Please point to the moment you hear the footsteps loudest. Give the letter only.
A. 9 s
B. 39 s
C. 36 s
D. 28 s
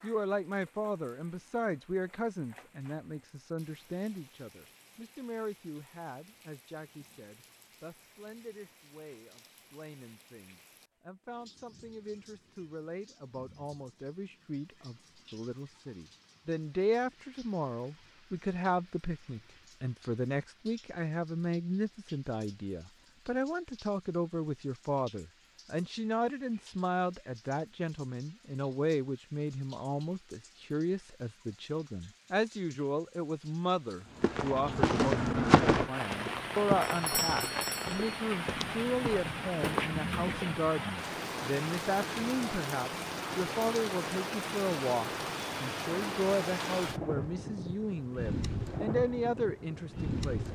C.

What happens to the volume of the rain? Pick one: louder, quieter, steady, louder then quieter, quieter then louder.
louder.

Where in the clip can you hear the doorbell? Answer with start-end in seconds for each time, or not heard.
36.8-38.2.